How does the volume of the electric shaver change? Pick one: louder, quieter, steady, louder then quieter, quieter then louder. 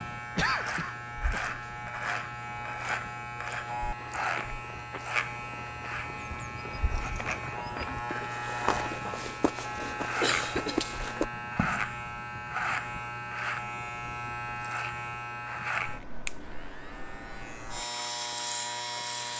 steady.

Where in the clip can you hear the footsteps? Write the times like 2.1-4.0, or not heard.
4.0-11.9.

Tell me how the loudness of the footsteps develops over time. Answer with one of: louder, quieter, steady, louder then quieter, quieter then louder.
louder.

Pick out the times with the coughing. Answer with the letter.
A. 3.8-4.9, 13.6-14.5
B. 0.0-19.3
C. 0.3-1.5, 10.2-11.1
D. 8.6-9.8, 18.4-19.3
C.